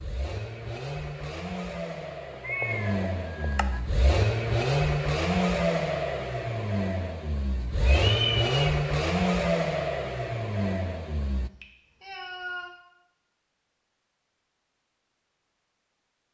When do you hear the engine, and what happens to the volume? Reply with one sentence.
You can hear the engine from 0.0 to 11.5 s, getting louder.